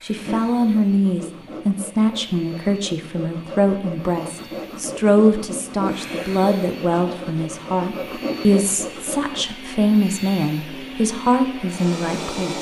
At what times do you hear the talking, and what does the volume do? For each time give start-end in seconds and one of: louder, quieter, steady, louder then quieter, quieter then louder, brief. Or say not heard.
0.0-12.5 steady.